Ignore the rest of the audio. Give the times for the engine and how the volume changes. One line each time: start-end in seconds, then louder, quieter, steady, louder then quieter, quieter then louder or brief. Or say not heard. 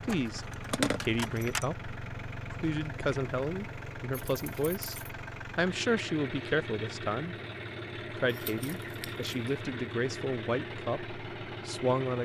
0.0-12.1 steady.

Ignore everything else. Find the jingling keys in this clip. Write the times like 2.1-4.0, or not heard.
0.1-1.6, 4.1-5.1, 8.2-9.6.